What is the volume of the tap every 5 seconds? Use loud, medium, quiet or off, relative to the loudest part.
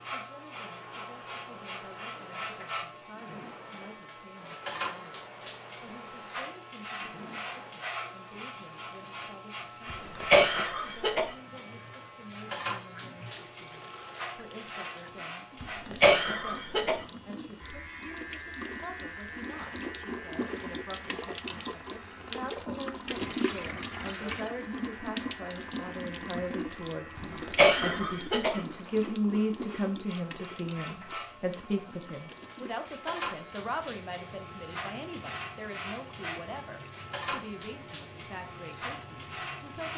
quiet, quiet, quiet, medium, loud, loud, quiet, quiet.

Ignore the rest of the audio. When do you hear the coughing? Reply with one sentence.
You can hear the coughing from 9.9 to 11.3 s, from 15.6 to 17.0 s and from 27.1 to 28.6 s.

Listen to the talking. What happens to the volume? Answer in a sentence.
The volume of the talking goes up, then down.